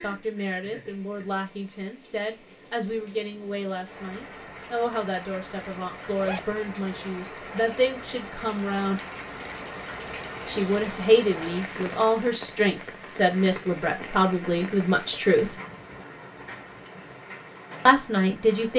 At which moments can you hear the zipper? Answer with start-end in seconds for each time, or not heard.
5.5-6.6.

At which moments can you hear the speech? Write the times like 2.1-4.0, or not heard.
0.0-9.0, 10.4-15.6, 17.9-18.7.